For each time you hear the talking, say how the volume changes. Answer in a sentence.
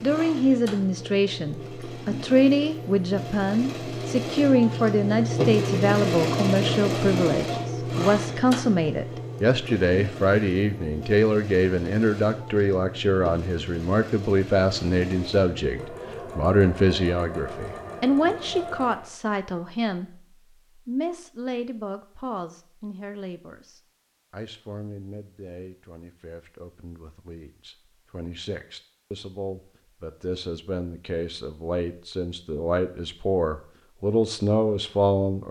You can hear the talking from 0.0 to 35.4 s, getting quieter then louder.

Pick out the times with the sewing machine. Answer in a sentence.
You can hear the sewing machine from 0.0 to 19.1 s.